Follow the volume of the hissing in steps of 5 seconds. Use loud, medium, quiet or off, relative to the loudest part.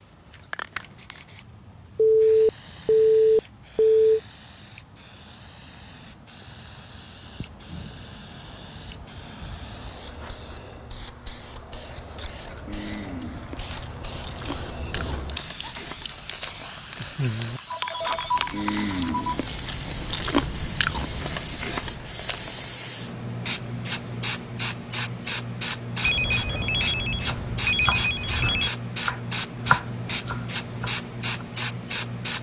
quiet, quiet, medium, medium, loud, loud, loud.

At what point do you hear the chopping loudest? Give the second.
30 s.